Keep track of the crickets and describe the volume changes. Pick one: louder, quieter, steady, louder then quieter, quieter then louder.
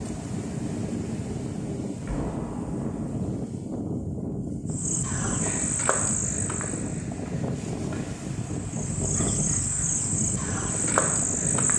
quieter then louder.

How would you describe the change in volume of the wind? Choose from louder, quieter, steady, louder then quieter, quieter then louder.
steady.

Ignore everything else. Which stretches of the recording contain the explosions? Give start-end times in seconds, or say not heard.
1.9-3.1.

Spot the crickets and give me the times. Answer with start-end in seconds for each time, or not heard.
4.7-11.7.